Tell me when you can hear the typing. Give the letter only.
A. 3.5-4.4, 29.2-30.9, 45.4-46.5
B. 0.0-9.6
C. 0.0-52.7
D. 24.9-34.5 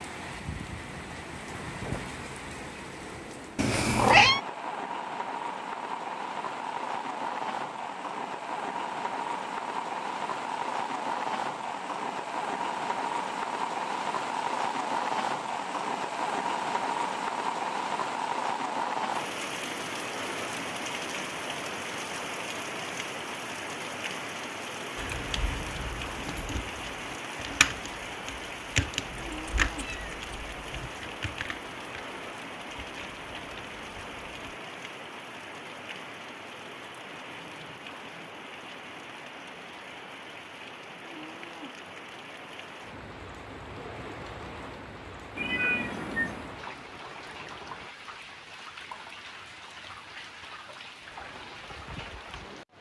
D.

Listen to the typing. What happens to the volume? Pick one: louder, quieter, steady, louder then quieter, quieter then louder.
louder then quieter.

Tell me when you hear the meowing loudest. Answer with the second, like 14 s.
4 s.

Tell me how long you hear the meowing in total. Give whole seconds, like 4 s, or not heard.
4 s.